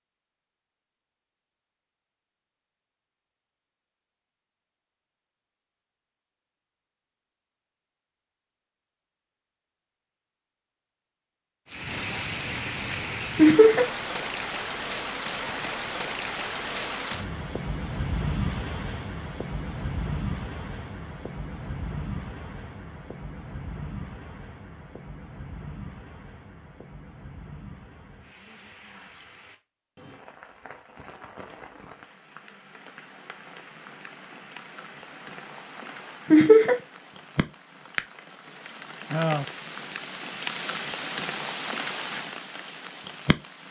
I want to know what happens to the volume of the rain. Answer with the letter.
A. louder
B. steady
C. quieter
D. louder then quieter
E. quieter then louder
E.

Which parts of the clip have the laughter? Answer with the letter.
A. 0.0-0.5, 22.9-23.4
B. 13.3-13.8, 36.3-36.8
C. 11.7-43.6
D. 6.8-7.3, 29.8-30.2
B.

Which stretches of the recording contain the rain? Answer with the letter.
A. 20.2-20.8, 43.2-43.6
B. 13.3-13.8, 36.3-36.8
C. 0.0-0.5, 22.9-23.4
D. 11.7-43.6
D.